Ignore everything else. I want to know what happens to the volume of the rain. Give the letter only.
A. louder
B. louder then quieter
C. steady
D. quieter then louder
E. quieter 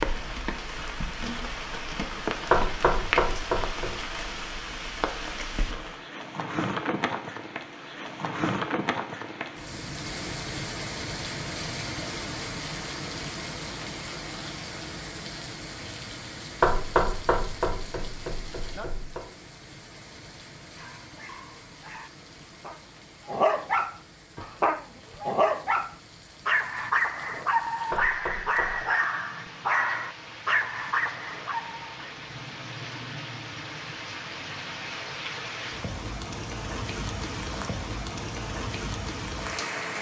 D.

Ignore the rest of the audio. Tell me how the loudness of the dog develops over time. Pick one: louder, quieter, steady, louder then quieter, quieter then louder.
louder.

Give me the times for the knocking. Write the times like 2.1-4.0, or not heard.
2.5-4.0, 16.6-19.2, 27.9-28.9.